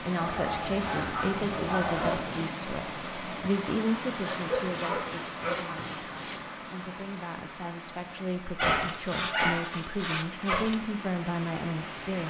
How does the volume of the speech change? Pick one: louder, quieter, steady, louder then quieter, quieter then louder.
quieter then louder.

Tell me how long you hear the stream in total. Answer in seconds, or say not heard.
12 s.